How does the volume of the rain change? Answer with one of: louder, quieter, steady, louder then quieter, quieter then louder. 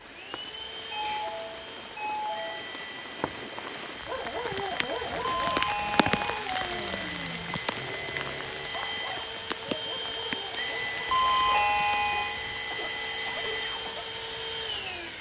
louder then quieter.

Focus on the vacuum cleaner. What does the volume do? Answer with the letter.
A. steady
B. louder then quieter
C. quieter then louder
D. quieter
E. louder
E.